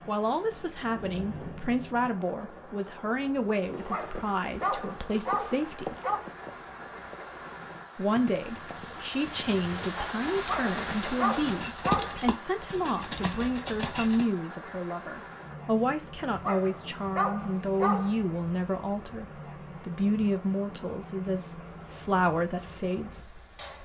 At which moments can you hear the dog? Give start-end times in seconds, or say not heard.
3.9-6.2, 10.4-12.3, 16.4-18.3.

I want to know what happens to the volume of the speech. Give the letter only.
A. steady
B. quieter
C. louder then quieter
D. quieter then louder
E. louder
A.